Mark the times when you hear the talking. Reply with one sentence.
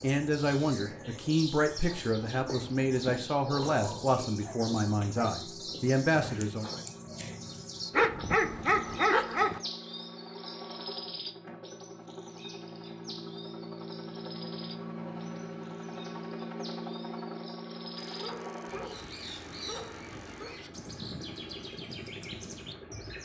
You can hear the talking from 0.0 to 6.8 s.